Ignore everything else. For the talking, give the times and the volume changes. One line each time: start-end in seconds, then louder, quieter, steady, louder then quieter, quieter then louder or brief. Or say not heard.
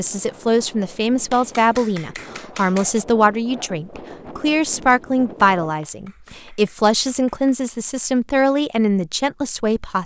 0.0-10.0 steady.